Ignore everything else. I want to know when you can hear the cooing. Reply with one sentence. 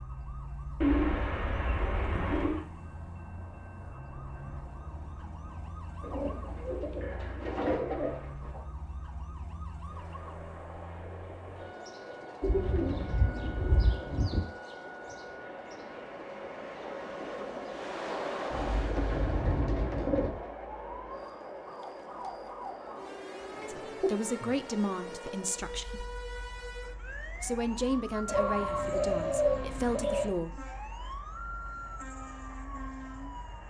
The cooing can be heard from 0.8 to 2.6 s, from 6.0 to 8.6 s, from 12.4 to 14.4 s, from 18.5 to 20.4 s, from 23.5 to 24.5 s and from 28.2 to 30.3 s.